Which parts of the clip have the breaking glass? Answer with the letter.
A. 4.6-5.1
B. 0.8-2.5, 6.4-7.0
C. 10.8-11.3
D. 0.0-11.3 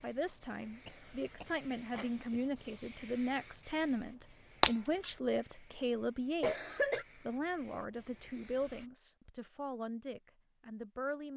A.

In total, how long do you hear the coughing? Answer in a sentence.
The coughing can be heard for 2 seconds in total.